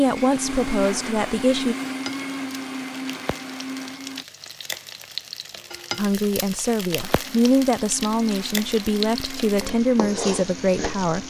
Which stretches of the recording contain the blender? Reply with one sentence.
You can hear the blender from 0.0 to 4.2 s and from 7.0 to 11.2 s.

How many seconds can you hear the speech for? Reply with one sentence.
The speech can be heard for 7 seconds in total.